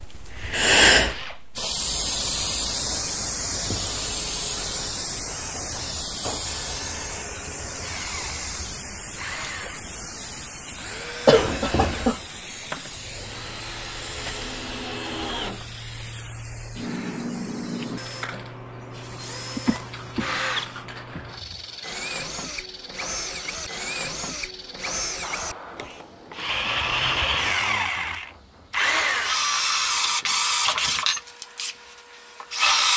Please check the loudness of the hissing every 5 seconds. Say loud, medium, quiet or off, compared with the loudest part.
loud, medium, medium, quiet, quiet, quiet, quiet.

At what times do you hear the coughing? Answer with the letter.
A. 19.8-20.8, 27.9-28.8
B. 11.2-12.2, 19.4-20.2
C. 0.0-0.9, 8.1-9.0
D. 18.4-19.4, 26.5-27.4
B.